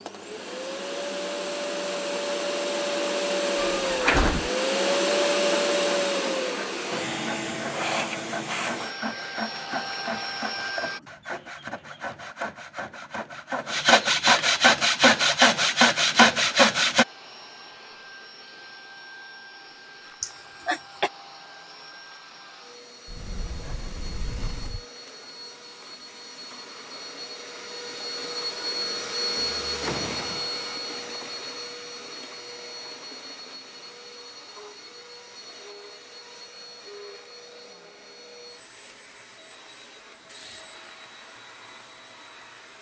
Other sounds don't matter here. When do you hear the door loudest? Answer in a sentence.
The loudest moment of the door is at 4 seconds.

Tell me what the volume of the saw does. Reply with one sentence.
The loudness of the saw goes up.